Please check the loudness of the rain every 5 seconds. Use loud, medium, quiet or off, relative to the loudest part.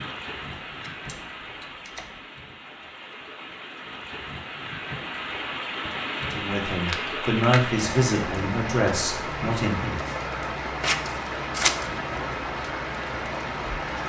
medium, loud, loud.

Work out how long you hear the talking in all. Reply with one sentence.
The talking can be heard for 4 seconds in total.